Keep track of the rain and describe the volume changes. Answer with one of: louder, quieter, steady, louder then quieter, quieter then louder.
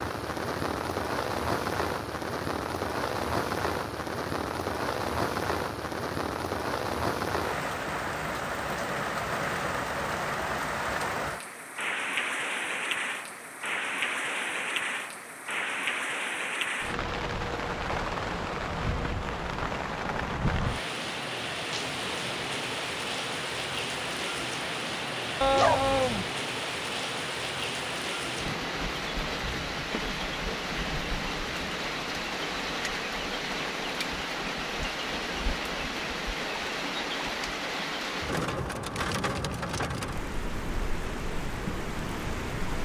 steady.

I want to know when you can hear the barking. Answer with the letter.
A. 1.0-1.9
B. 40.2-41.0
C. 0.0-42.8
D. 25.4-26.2
D.